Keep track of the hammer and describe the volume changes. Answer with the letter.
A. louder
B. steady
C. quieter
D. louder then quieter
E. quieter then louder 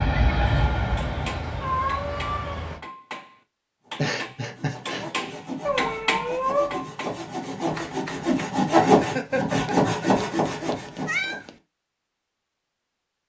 D.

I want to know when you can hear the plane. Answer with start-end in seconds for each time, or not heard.
0.0-2.6.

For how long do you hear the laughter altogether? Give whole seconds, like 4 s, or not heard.
2 s.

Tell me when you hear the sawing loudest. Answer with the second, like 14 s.
9 s.